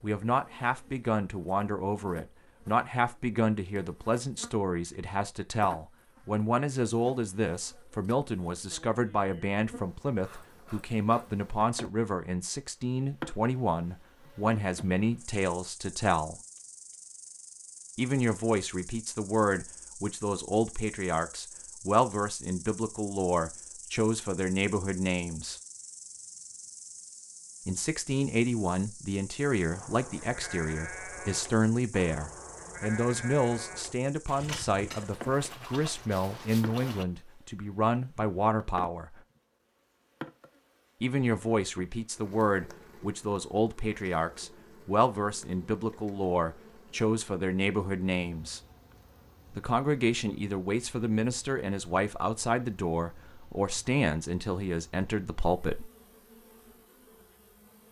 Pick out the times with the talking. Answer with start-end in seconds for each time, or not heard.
0.0-16.4, 17.9-25.6, 27.6-39.2, 41.0-48.6, 49.5-55.9.